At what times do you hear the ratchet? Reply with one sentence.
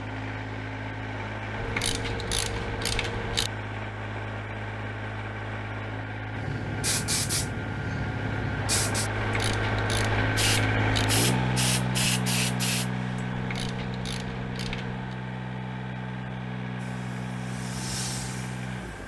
You can hear the ratchet from 1.6 to 3.5 s, from 9.2 to 11.1 s and from 13.3 to 15.2 s.